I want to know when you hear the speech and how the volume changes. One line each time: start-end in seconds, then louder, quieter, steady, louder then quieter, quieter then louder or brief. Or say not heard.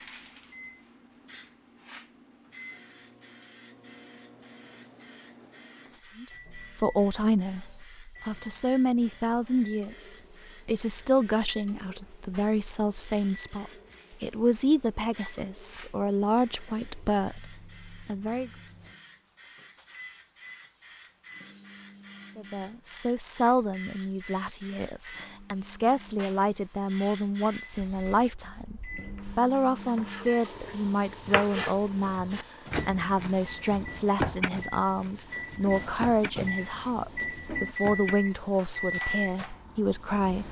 6.2-18.5 steady
22.4-40.4 steady.